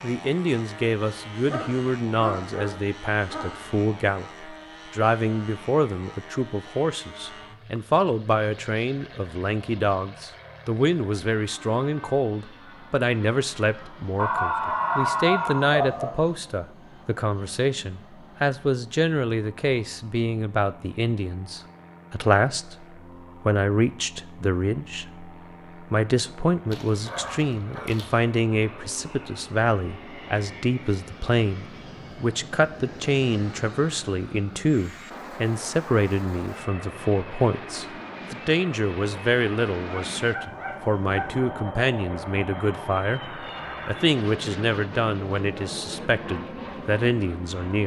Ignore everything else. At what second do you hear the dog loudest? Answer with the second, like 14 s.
15 s.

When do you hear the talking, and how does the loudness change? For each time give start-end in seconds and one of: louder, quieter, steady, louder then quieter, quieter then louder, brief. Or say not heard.
0.0-47.8 steady.